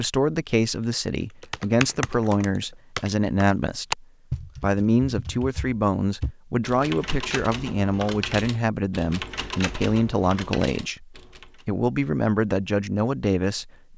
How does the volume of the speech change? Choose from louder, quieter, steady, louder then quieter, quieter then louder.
steady.